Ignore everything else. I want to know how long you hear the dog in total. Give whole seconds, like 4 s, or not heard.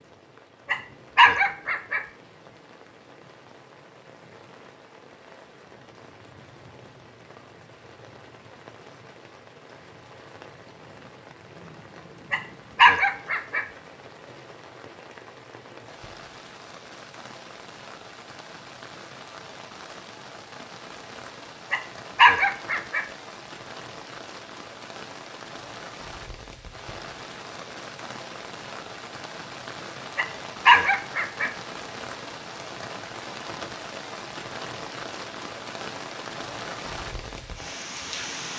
5 s.